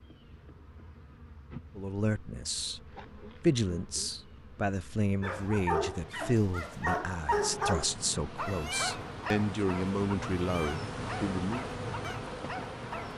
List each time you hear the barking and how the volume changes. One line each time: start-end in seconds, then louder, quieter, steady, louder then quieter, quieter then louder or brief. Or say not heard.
5.2-13.1 quieter.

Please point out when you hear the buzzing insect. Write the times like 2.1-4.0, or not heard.
0.0-13.1.